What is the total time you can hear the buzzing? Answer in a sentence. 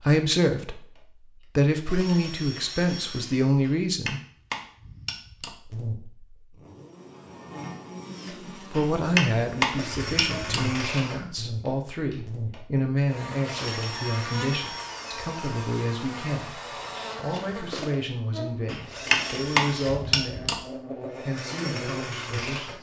The buzzing can be heard for 17 seconds in total.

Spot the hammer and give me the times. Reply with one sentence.
The hammer can be heard from 3.6 to 5.5 s, from 8.8 to 10.7 s and from 18.6 to 20.6 s.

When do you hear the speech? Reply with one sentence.
You can hear the speech from 0.0 to 4.2 s and from 8.6 to 22.7 s.